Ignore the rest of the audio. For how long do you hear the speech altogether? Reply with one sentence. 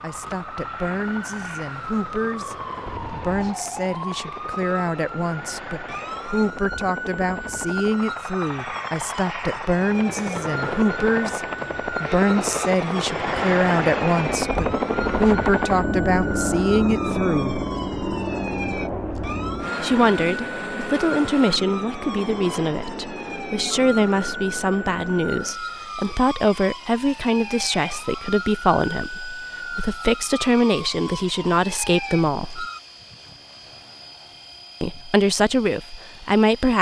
The speech can be heard for 32 seconds in total.